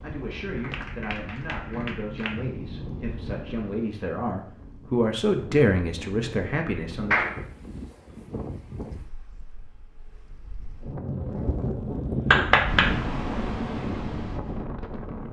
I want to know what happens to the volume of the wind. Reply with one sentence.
The volume of the wind goes up.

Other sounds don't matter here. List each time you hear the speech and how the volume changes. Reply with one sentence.
You can hear the speech from 0.0 to 7.2 s, getting louder.